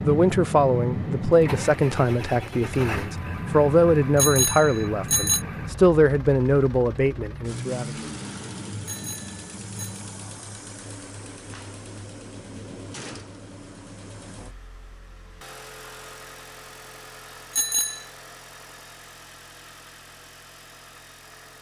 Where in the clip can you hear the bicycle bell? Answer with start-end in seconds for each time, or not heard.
4.2-5.5, 8.8-10.0, 17.5-18.1.